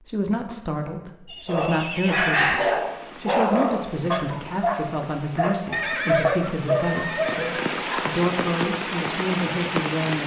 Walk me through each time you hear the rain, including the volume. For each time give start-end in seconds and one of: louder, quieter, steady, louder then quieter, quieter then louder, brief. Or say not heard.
2.6-10.2 louder.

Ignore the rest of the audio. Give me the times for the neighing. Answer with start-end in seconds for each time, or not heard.
1.2-2.4, 5.7-7.8.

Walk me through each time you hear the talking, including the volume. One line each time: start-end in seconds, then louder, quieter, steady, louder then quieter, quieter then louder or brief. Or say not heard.
0.1-10.2 steady.